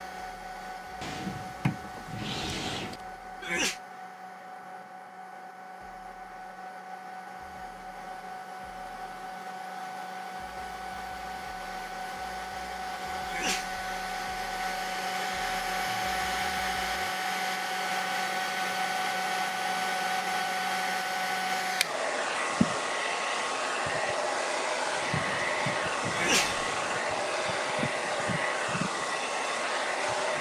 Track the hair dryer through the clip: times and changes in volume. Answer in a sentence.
You can hear the hair dryer from 0.0 to 30.3 s, getting louder.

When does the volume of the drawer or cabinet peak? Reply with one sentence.
The loudest moment of the drawer or cabinet is at 2 seconds.